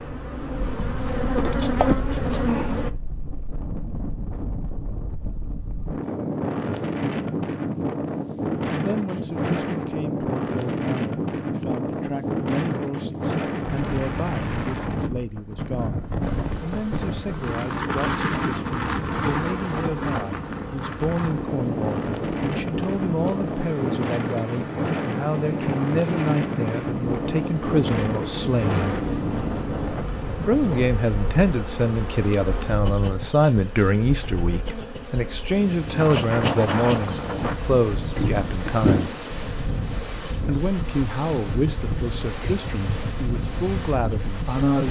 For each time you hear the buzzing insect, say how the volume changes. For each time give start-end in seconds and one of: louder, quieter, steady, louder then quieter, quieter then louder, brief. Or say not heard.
0.0-2.9 brief
16.2-44.8 louder.